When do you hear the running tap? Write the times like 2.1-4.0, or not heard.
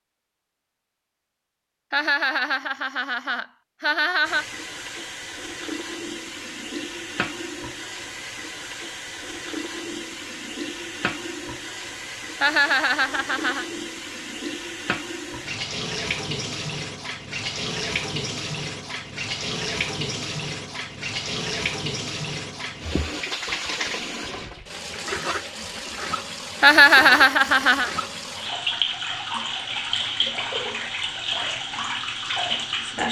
4.2-33.0.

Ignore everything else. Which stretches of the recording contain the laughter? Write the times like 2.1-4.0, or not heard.
1.9-4.5, 12.4-13.7, 26.6-27.9.